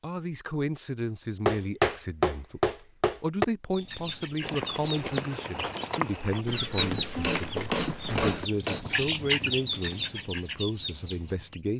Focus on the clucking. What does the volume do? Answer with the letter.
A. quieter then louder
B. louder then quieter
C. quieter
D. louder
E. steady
B.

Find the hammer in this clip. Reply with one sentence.
You can hear the hammer from 1.4 to 3.5 s and from 6.2 to 8.8 s.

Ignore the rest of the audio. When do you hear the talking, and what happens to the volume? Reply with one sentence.
You can hear the talking from 0.0 to 11.7 s, at a steady volume.